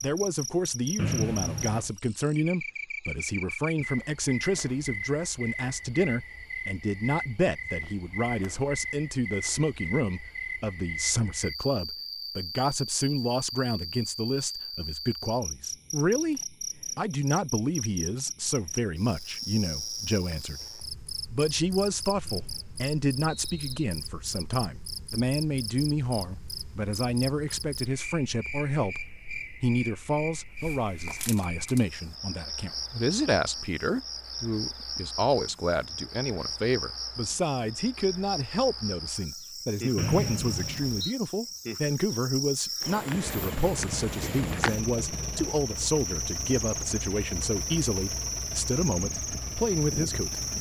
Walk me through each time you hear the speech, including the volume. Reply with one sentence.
The speech can be heard from 0.0 to 50.5 s, at a steady volume.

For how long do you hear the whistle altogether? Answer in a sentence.
You can hear the whistle for 4 seconds altogether.